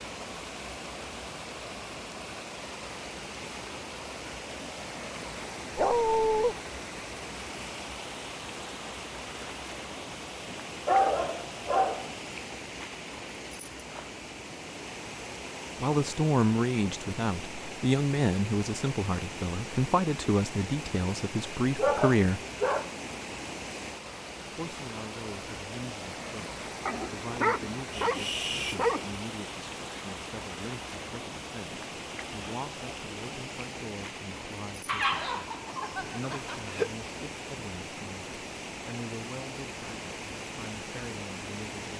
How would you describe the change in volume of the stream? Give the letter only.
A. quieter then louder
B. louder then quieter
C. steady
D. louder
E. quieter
C.